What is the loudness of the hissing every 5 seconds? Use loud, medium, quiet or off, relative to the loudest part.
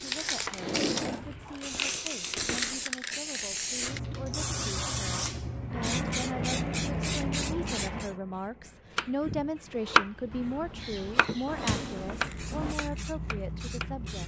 loud, loud, medium.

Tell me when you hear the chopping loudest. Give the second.
10 s.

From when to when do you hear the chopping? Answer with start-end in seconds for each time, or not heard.
0.2-2.1, 8.9-13.9.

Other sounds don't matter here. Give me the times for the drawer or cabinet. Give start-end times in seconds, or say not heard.
0.6-1.3, 11.4-12.8.